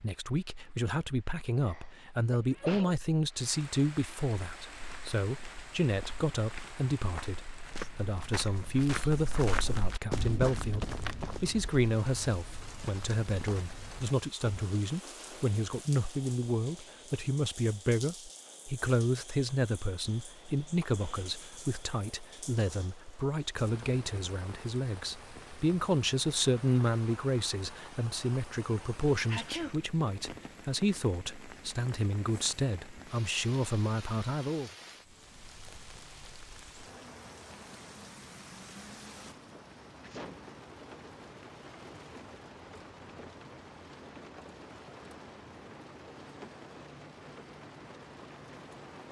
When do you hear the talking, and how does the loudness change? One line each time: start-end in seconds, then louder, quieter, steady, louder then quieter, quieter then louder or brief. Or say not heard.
0.0-34.7 steady.